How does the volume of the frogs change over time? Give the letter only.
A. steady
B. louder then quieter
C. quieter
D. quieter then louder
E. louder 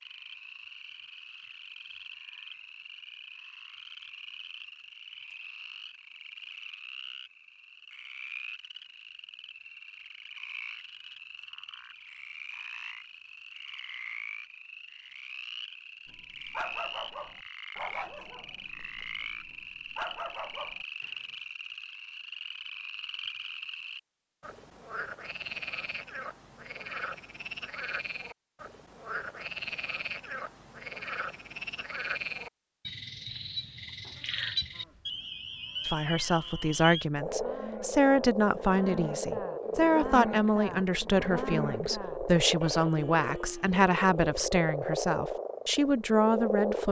E.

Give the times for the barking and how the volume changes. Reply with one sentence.
The barking can be heard from 16.1 to 21.2 s, getting quieter then louder.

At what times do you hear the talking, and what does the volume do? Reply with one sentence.
The talking can be heard from 35.9 to 46.8 s, at a steady volume.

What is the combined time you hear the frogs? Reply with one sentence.
You can hear the frogs for 47 seconds altogether.